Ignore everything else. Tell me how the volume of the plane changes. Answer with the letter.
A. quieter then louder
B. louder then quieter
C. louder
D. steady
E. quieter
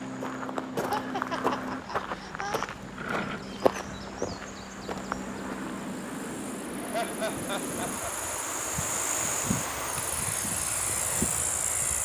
D.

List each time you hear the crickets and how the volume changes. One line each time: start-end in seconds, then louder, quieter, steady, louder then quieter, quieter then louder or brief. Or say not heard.
0.0-12.0 louder.